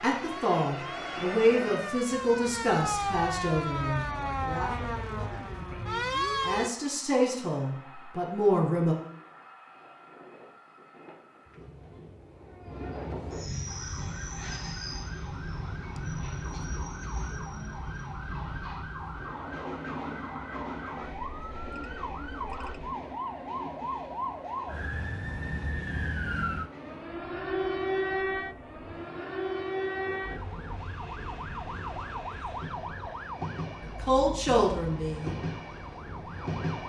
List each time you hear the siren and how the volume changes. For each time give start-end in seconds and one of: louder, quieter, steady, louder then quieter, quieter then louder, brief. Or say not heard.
0.0-6.7 louder
13.7-36.8 louder then quieter.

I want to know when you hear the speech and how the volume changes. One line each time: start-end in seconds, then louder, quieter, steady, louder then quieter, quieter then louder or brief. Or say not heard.
0.0-8.9 quieter then louder
33.8-35.4 brief.